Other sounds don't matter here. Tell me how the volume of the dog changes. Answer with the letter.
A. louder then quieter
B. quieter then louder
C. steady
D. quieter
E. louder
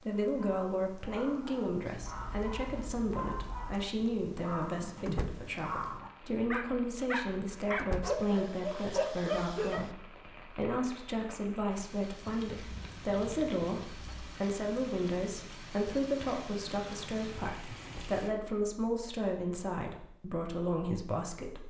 E.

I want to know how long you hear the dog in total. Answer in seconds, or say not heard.
10 s.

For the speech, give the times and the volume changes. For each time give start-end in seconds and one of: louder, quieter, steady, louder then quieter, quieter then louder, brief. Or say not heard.
0.0-21.6 steady.